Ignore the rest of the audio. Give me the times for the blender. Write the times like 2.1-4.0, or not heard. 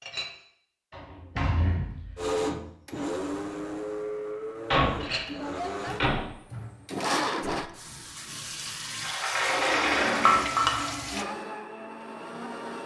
2.1-7.7, 11.1-12.8.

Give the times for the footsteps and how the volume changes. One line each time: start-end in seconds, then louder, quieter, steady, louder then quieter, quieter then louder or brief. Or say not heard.
not heard.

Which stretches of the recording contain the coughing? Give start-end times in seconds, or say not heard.
not heard.